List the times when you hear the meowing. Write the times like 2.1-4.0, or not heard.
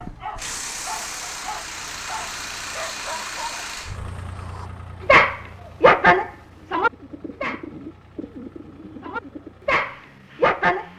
not heard.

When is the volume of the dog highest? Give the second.
6 s.